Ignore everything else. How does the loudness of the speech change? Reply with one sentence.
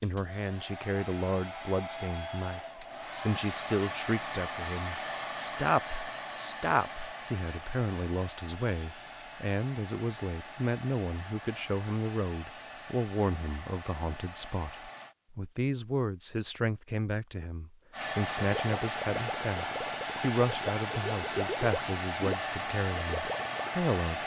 The loudness of the speech stays about the same.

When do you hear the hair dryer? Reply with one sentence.
You can hear the hair dryer from 0.0 to 15.2 s and from 17.9 to 24.2 s.